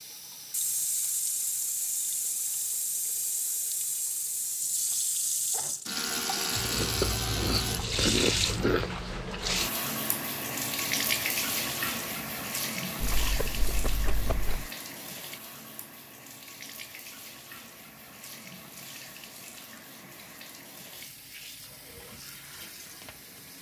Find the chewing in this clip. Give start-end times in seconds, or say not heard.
6.5-8.9, 13.0-14.7.